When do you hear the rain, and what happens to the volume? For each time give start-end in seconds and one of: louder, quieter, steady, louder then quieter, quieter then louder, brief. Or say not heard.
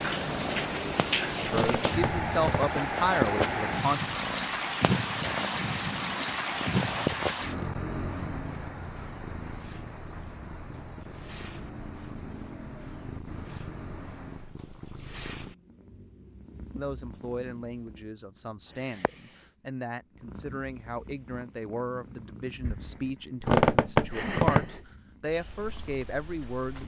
0.0-14.6 quieter.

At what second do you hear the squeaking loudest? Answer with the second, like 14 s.
24 s.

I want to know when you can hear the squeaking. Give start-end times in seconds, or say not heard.
1.4-2.6, 23.4-24.8.